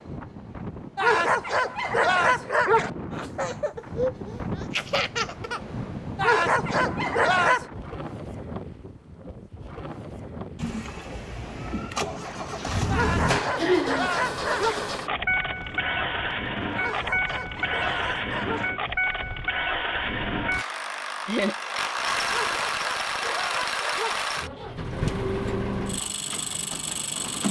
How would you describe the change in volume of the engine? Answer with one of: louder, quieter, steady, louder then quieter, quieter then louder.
steady.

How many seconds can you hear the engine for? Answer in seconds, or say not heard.
17 s.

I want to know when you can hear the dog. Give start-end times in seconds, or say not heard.
0.9-2.9, 6.2-7.7, 12.9-14.8, 16.8-18.7, 22.2-24.2.